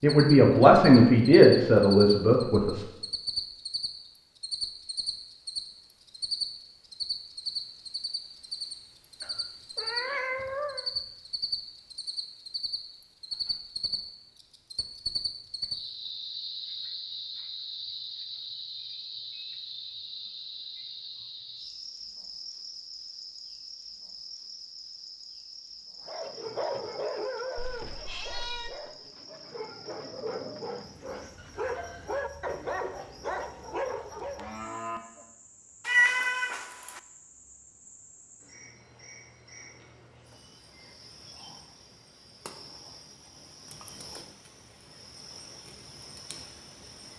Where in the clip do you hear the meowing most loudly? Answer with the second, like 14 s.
36 s.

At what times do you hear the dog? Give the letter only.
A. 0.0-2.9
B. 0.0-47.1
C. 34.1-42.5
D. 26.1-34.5
D.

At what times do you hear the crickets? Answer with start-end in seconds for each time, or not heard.
0.0-47.1.